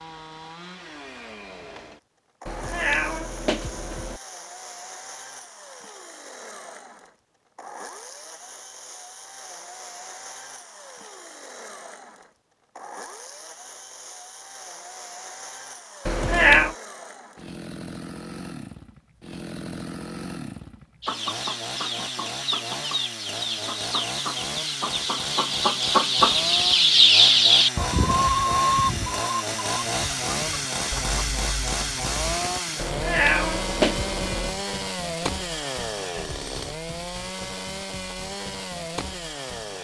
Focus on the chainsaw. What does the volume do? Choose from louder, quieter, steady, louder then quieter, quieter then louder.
louder.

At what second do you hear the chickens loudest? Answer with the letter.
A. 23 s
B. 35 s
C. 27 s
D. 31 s
C.